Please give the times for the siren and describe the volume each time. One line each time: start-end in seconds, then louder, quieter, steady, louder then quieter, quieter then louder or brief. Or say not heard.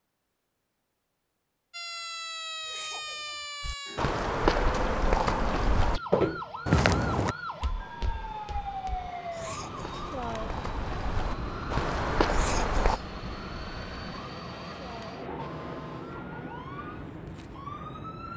1.7-18.3 quieter.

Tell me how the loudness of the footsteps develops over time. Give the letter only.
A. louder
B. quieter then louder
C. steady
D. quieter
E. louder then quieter
B.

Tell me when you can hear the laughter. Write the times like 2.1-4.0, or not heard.
2.6-3.5, 9.3-10.0, 12.2-13.1.